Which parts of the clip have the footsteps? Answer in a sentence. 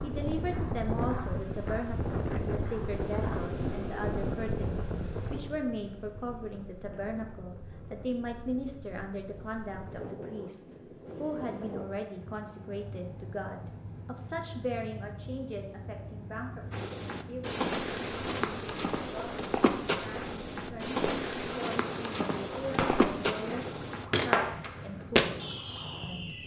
You can hear the footsteps from 0.0 to 3.4 s and from 16.7 to 25.3 s.